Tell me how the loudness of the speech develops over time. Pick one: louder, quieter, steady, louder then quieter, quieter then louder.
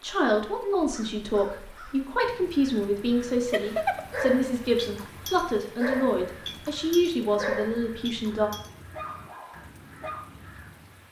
steady.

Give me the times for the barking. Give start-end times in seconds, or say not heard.
3.5-10.2.